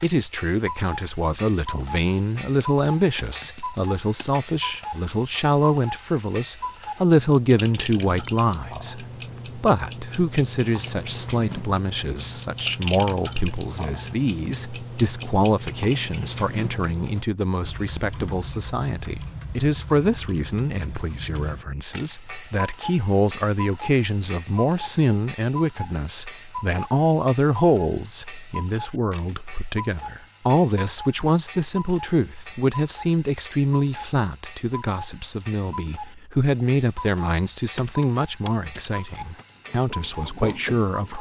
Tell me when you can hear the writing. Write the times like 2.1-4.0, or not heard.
39.5-41.1.